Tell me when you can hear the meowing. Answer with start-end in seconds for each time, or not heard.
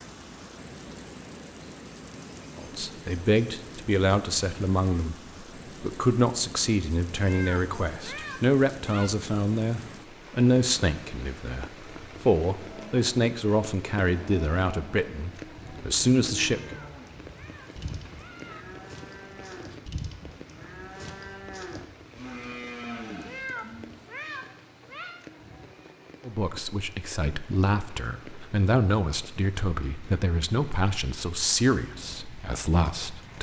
7.2-9.1, 16.6-18.6, 23.2-25.2.